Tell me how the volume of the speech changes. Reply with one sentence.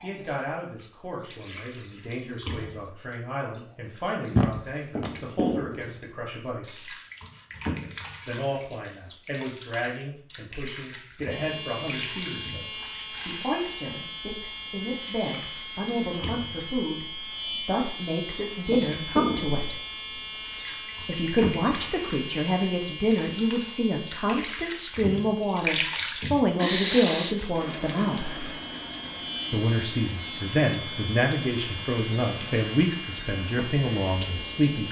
The volume of the speech goes up.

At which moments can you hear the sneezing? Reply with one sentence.
You can hear the sneezing from 4.3 to 5.1 s and from 26.6 to 27.4 s.